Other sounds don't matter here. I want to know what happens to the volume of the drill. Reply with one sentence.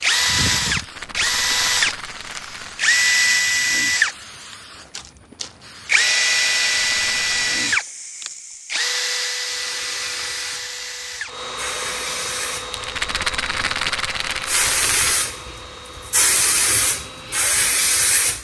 The volume of the drill goes down.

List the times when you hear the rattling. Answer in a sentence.
The rattling can be heard from 0.7 to 2.9 s, from 6.8 to 7.5 s and from 12.7 to 15.2 s.